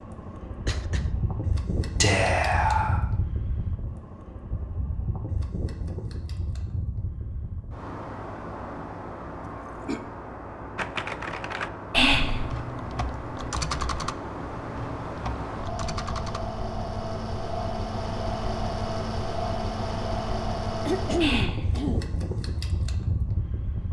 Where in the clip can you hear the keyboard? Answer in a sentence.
You can hear the keyboard from 10.8 to 16.4 s.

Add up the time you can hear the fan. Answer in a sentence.
The fan can be heard for 24 seconds in total.